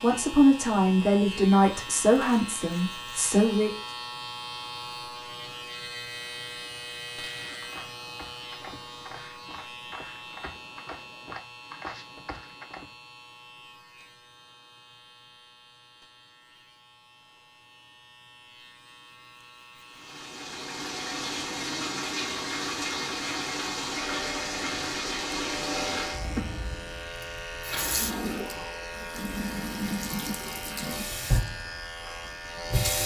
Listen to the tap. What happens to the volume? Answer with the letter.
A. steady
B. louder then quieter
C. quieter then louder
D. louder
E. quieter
A.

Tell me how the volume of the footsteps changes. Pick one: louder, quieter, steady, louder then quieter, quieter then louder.
louder.